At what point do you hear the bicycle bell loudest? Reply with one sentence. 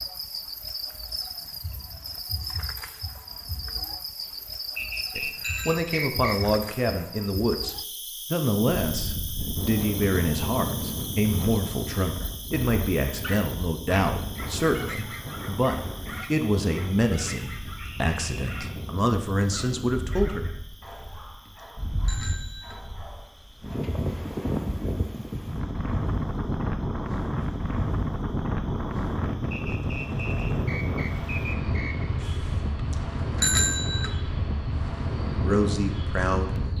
The volume of the bicycle bell peaks at 34 seconds.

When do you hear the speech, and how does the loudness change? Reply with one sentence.
You can hear the speech from 5.2 to 20.4 s, at a steady volume; and briefly from 35.4 to 36.5 s.